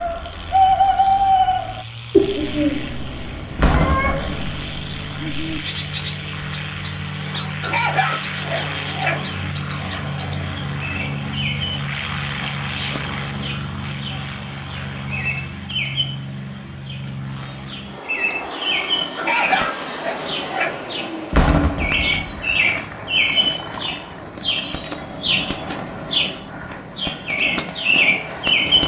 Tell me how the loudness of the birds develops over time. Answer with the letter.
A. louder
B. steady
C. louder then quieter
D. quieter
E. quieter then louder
E.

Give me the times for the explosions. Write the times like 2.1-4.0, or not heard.
3.5-4.7, 21.3-22.5.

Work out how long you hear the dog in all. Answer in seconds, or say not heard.
3 s.